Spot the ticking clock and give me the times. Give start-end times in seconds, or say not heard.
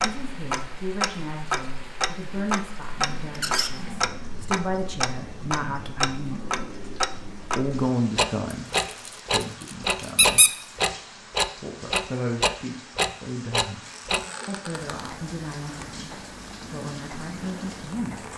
0.0-18.3.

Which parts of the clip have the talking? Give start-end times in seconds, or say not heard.
0.0-6.5, 7.5-10.7, 11.6-13.8, 14.4-18.3.